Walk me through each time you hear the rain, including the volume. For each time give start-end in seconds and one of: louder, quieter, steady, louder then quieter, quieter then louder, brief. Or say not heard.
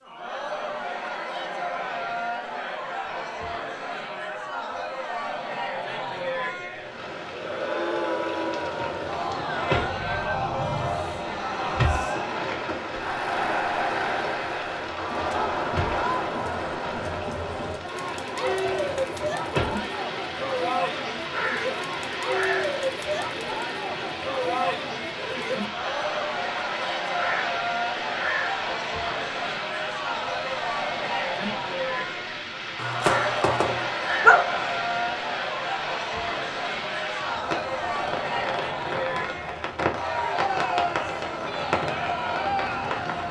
6.7-43.2 steady.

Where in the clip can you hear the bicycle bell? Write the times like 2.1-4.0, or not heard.
not heard.